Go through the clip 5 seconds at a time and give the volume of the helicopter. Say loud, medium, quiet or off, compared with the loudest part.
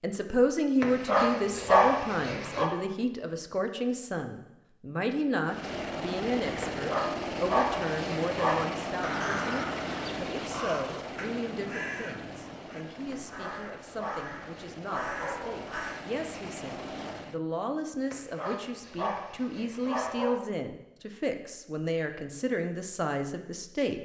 off, loud, medium, medium, off.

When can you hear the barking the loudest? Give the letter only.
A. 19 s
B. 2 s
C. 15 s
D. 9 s
B.